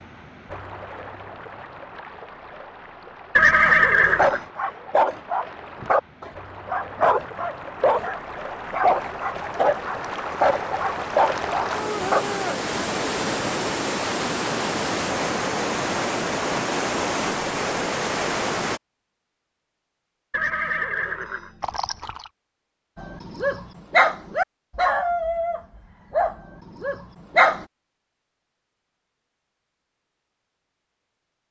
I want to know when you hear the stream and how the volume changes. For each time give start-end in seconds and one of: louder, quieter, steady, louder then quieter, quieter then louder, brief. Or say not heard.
0.0-18.8 louder.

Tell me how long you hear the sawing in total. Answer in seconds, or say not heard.
not heard.